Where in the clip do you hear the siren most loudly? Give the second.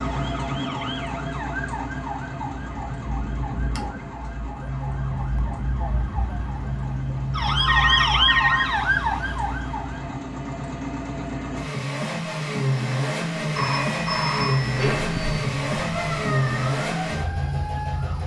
8 s.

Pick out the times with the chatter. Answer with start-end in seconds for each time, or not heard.
not heard.